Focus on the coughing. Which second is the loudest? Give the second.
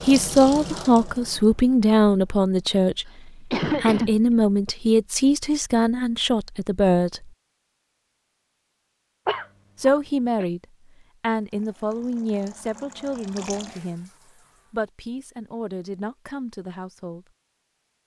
4 s.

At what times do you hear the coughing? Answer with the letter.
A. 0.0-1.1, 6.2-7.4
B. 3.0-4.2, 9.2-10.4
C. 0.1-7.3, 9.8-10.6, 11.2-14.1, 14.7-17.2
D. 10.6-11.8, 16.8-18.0
B.